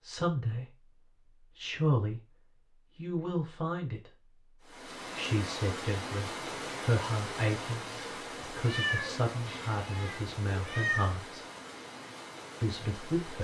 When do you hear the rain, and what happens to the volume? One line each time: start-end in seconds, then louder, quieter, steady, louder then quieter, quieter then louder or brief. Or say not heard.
4.6-13.3 quieter.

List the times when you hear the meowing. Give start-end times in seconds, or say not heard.
8.6-11.2.